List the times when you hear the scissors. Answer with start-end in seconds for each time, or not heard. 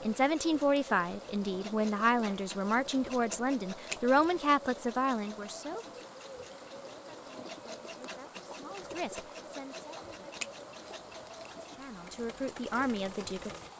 3.9-4.5, 10.3-11.5.